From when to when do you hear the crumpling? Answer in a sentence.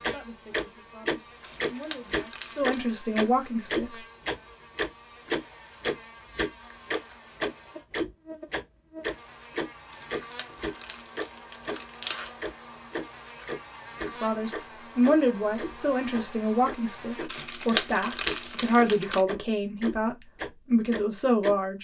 You can hear the crumpling from 1.4 to 2.9 s, from 9.9 to 12.3 s and from 17.2 to 19.2 s.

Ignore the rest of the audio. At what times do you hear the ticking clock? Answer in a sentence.
The ticking clock can be heard from 0.0 to 11.8 s and from 12.4 to 21.6 s.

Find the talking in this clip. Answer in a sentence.
You can hear the talking from 0.0 to 4.0 s and from 14.1 to 21.7 s.